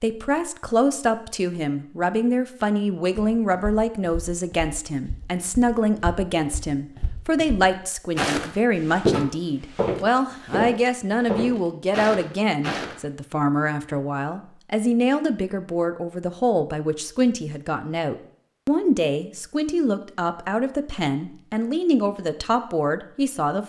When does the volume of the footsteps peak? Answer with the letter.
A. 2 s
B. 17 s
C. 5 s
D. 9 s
D.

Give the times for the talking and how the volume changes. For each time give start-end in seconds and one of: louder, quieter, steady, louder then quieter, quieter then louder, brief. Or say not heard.
0.0-23.6 steady.